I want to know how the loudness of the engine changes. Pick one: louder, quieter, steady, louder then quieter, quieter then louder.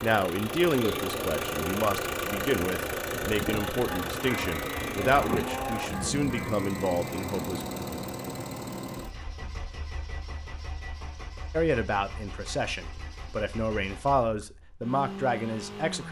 quieter.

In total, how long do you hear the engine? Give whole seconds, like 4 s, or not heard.
16 s.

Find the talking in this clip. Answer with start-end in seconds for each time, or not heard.
0.0-7.7, 11.5-16.0.